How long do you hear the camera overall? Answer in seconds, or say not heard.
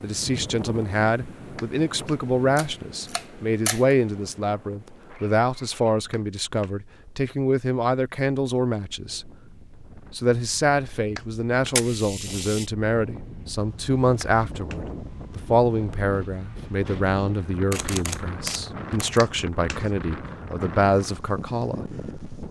4 s.